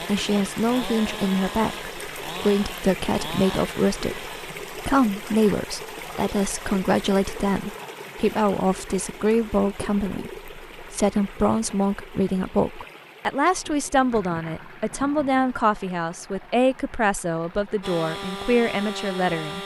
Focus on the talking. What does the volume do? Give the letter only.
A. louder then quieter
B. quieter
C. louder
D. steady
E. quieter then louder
D.